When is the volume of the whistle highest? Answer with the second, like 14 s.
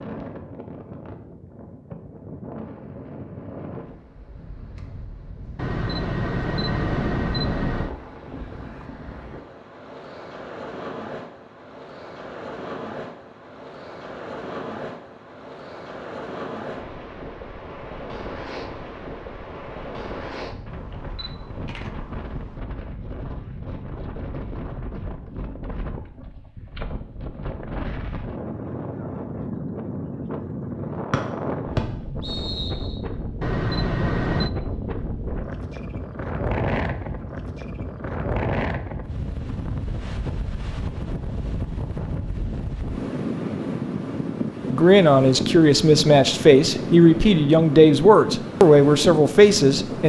32 s.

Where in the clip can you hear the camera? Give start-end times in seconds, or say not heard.
5.5-8.0, 20.6-22.6, 33.4-34.5.